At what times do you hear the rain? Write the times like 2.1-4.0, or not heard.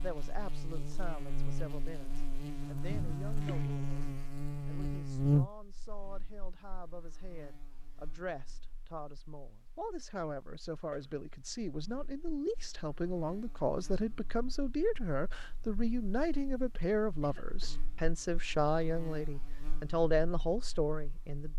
not heard.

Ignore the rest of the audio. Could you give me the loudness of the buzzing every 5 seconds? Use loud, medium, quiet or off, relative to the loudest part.
loud, loud, quiet, quiet, quiet.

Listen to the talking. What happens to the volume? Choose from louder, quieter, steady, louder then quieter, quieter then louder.
louder.